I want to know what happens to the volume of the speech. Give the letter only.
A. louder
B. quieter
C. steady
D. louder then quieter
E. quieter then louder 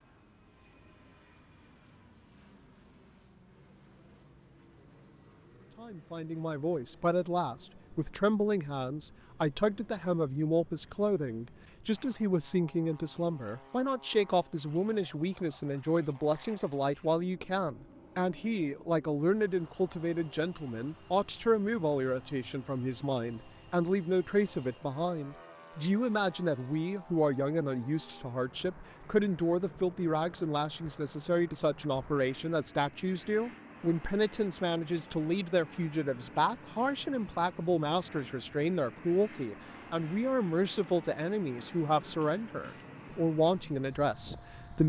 C.